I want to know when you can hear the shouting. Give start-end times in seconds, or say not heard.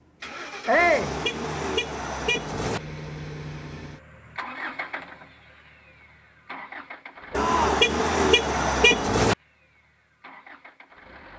0.7-1.1, 7.3-7.8.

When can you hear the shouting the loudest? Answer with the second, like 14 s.
1 s.